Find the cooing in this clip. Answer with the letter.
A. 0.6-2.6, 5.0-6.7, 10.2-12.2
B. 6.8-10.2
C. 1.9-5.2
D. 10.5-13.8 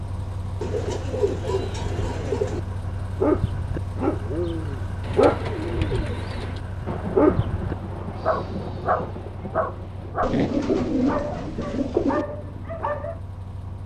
A.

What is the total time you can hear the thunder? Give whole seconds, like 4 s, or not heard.
3 s.